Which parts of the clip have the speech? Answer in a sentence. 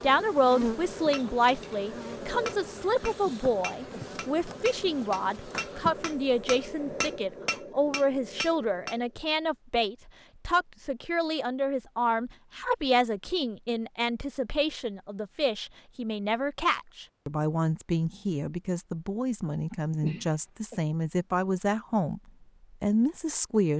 The speech can be heard from 0.0 to 22.2 s and from 22.8 to 23.7 s.